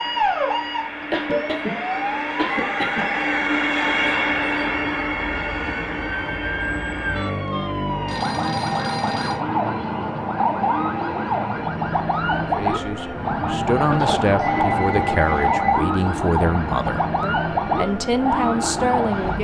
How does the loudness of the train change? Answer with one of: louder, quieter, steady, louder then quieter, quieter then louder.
quieter.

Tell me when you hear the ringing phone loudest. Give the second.
15 s.